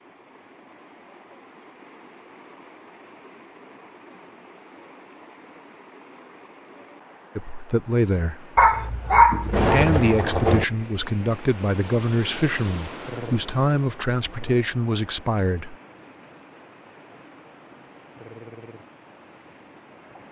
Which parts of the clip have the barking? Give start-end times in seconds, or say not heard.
8.6-9.7.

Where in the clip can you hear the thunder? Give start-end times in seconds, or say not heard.
9.3-10.7.